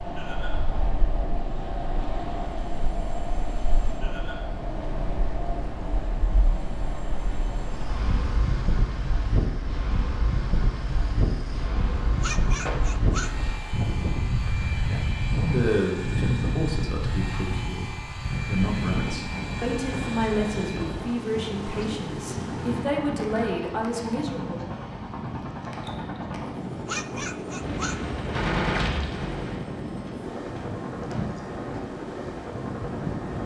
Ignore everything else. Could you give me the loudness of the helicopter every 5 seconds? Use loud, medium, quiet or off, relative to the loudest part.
medium, medium, medium, loud, loud, loud, loud.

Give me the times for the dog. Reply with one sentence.
The dog can be heard from 12.1 to 13.5 s and from 26.6 to 28.1 s.